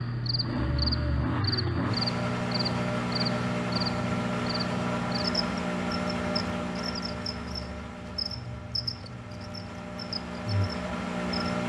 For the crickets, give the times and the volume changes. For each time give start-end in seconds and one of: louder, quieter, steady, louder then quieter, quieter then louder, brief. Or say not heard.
0.0-11.6 quieter.